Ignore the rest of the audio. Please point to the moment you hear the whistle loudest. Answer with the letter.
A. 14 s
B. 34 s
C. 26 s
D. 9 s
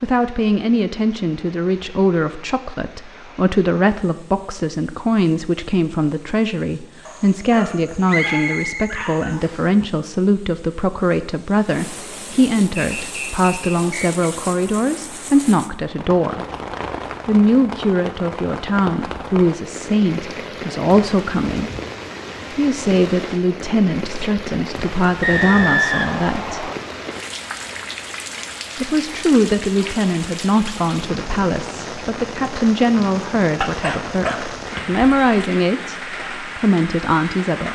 C.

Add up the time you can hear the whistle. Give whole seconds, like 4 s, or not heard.
5 s.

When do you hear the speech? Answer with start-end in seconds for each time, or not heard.
0.0-16.4, 17.2-21.7, 22.6-26.7, 28.8-36.0, 36.5-37.7.